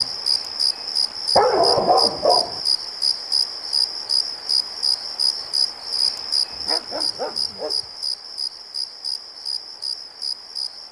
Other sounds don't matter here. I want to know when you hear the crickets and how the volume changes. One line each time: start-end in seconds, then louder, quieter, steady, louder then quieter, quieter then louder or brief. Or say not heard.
0.0-10.8 quieter.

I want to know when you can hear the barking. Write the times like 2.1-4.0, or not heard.
1.4-2.6, 6.5-7.8.